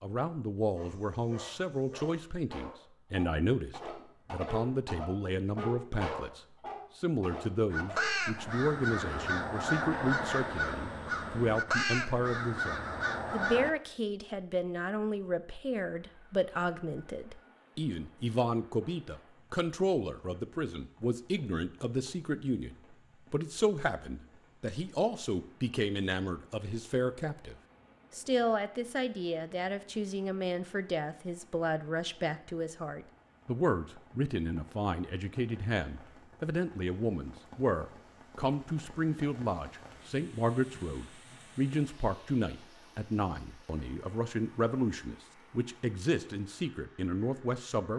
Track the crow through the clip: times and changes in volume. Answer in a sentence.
You can hear the crow from 7.7 to 13.7 s, at a steady volume.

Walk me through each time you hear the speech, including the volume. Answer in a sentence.
You can hear the speech from 0.0 to 47.9 s, at a steady volume.